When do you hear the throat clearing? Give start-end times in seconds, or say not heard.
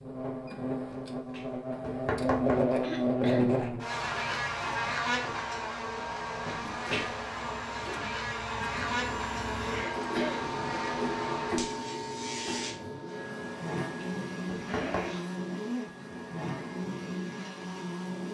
2.8-3.6, 9.6-10.5, 14.6-15.6.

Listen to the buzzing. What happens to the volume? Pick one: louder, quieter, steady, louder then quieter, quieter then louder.
quieter.